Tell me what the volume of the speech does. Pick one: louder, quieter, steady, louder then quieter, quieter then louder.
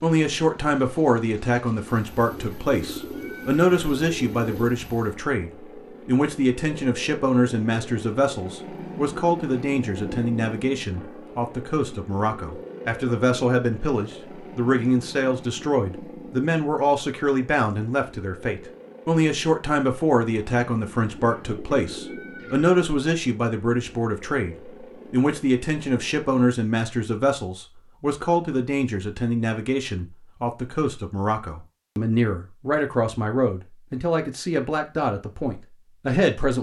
steady.